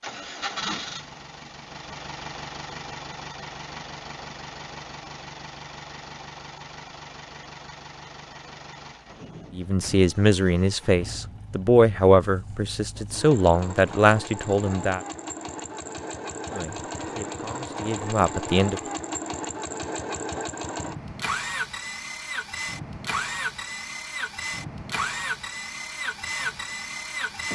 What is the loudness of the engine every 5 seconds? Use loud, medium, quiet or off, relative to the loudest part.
medium, medium, medium, loud, loud, loud.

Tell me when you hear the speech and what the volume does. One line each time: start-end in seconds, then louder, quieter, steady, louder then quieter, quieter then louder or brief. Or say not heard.
9.6-15.0 steady
16.5-18.8 brief.